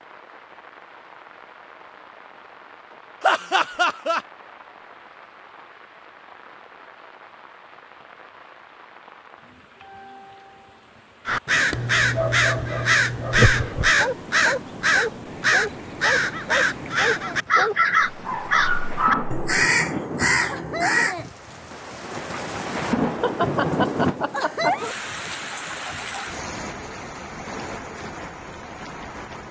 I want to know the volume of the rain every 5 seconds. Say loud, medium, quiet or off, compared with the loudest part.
quiet, quiet, quiet, medium, loud, medium.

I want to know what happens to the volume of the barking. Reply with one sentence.
The loudness of the barking stays about the same.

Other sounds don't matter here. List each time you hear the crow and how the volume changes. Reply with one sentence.
The crow can be heard from 11.2 to 21.1 s, at a steady volume.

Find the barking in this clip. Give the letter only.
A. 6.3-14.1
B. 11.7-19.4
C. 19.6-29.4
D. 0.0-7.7
B.